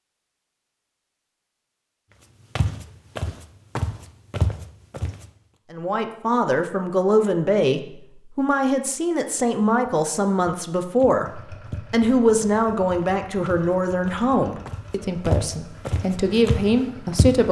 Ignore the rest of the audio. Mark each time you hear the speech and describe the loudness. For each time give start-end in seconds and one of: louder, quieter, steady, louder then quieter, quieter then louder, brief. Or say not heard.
5.7-17.4 steady.